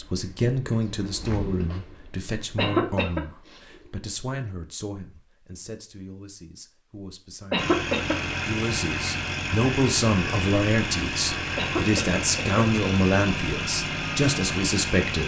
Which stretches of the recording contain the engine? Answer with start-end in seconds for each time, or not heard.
7.5-15.2.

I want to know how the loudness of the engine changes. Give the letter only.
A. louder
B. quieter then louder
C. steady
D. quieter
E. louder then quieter
C.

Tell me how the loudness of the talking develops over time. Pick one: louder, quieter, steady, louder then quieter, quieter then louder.
quieter then louder.